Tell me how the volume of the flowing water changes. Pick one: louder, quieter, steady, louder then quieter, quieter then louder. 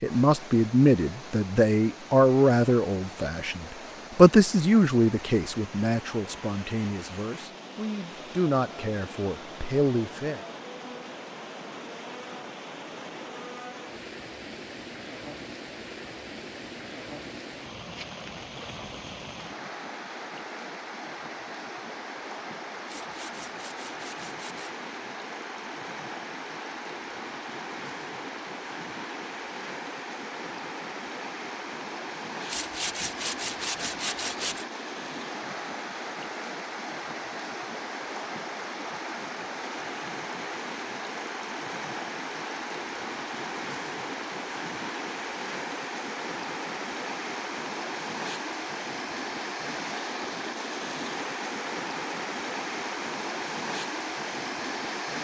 louder.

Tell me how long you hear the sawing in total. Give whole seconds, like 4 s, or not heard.
4 s.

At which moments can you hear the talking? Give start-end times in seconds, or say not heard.
0.0-10.4.